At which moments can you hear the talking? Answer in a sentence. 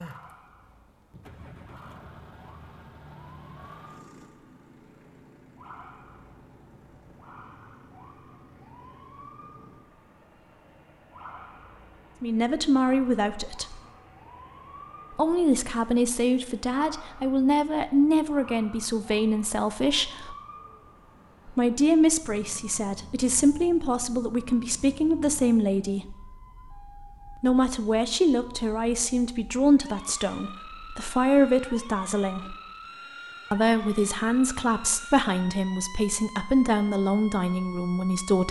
You can hear the talking from 12.2 to 13.8 s, from 15.1 to 20.4 s, from 21.4 to 26.1 s, from 27.4 to 32.5 s and from 33.5 to 38.4 s.